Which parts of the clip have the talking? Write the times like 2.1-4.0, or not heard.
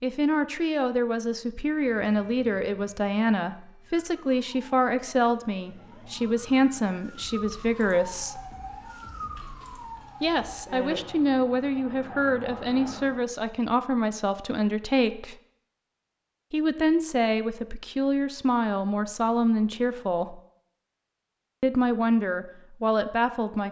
0.0-8.4, 10.2-15.3, 16.5-20.4, 21.6-23.6.